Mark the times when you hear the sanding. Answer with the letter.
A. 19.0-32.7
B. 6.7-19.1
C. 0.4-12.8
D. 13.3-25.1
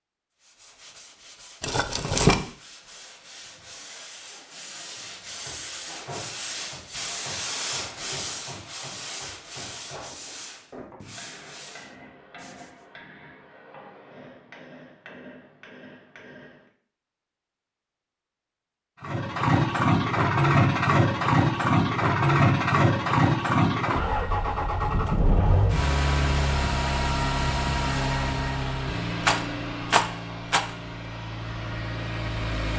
C.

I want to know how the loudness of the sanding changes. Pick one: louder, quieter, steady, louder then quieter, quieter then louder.
louder then quieter.